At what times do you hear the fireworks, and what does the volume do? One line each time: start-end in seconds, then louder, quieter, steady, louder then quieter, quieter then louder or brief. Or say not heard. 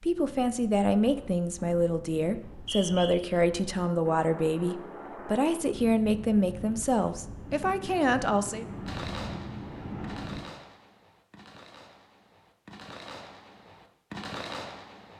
8.8-15.1 quieter then louder.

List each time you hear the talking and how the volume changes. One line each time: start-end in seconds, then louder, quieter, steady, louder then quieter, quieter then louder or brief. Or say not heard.
0.0-8.7 steady.